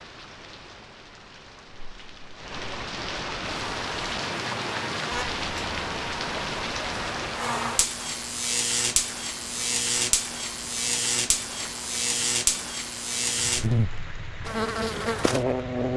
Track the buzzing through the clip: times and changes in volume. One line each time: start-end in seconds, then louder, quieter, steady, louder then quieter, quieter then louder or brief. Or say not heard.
3.5-15.9 louder.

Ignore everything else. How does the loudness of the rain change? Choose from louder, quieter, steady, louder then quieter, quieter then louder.
louder then quieter.